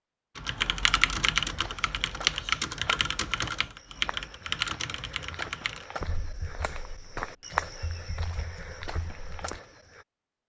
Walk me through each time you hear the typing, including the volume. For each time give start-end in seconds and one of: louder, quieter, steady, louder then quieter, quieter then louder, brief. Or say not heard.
0.3-9.6 quieter.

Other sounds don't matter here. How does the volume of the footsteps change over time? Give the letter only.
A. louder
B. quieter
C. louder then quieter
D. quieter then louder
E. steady
C.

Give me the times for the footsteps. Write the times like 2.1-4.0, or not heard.
1.4-10.1.